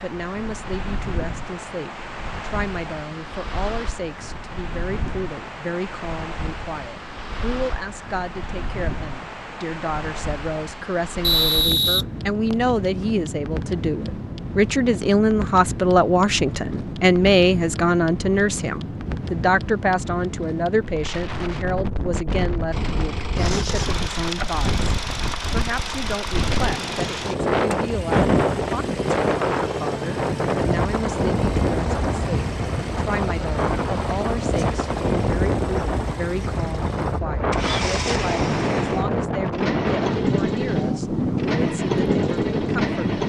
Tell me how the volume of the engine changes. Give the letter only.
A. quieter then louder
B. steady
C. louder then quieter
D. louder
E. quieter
B.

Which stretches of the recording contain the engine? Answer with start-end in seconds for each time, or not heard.
22.7-43.2.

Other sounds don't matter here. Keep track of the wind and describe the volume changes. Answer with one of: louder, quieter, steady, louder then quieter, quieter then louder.
louder.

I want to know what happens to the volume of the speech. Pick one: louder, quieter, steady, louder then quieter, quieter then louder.
louder then quieter.